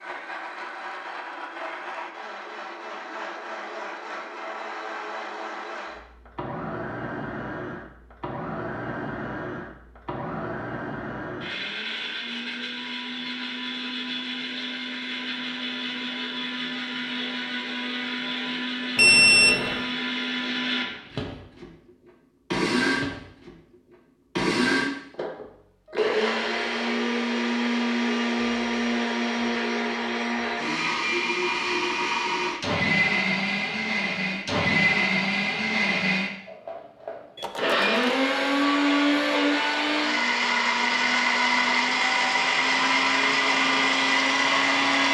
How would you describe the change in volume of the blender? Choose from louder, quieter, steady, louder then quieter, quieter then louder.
louder.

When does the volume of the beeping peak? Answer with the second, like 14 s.
19 s.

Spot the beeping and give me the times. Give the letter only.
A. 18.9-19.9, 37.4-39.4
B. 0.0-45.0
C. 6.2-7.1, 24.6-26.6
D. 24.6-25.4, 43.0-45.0
A.